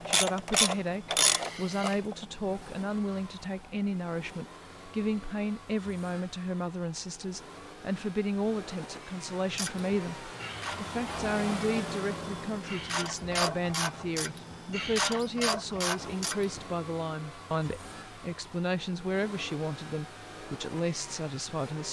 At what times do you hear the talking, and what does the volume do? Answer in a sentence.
The talking can be heard from 0.0 to 21.8 s, at a steady volume.